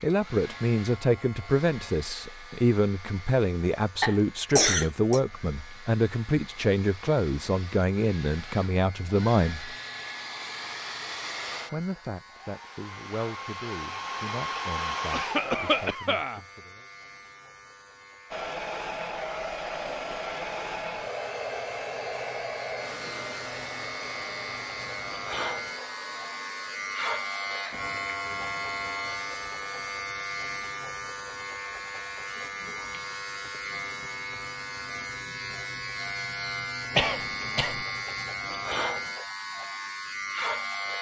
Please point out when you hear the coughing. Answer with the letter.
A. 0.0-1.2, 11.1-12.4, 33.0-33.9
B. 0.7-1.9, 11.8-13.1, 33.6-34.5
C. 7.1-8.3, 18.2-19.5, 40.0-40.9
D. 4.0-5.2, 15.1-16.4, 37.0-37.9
D.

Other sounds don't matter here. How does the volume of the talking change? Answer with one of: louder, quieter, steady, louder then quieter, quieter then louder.
quieter.